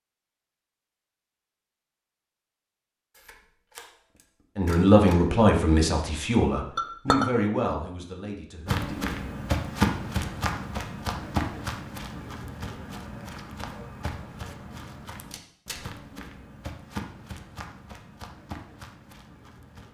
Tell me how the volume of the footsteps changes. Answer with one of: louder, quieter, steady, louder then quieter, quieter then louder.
quieter.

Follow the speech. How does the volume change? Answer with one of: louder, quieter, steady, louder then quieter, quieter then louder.
quieter.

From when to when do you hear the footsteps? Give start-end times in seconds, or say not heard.
8.7-19.8.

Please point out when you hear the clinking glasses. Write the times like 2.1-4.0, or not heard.
6.8-7.3.